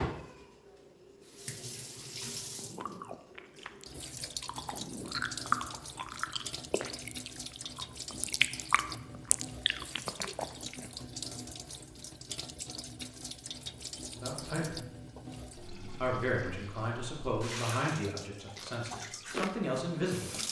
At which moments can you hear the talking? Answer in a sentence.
The talking can be heard from 14.1 to 14.8 s and from 16.0 to 20.4 s.